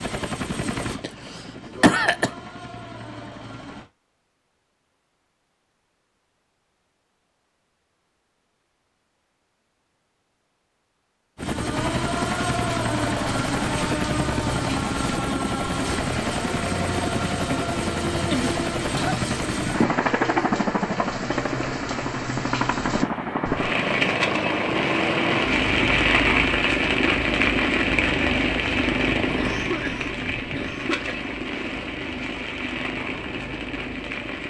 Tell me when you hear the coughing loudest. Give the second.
2 s.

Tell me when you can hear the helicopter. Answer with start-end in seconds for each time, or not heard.
0.0-3.9, 11.3-34.4.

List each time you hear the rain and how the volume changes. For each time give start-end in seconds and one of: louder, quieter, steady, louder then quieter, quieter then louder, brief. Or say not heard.
11.7-34.4 louder then quieter.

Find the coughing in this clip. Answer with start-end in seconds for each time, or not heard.
1.0-2.3, 18.9-20.0, 29.4-31.2.